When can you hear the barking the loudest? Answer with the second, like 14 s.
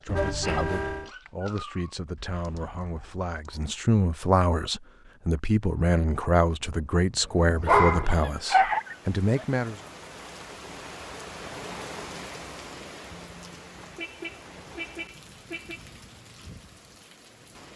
8 s.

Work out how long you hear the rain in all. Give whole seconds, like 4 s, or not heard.
9 s.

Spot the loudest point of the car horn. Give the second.
1 s.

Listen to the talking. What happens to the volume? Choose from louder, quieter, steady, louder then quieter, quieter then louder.
louder.